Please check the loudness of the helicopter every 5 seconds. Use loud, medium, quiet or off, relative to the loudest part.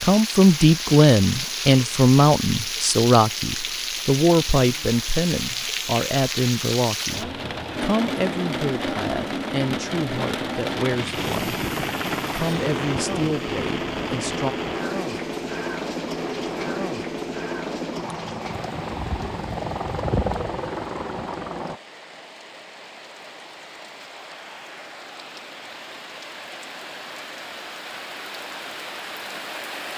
off, off, loud, loud, loud, off.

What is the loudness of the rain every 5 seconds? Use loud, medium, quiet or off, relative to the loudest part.
loud, loud, loud, medium, quiet, medium.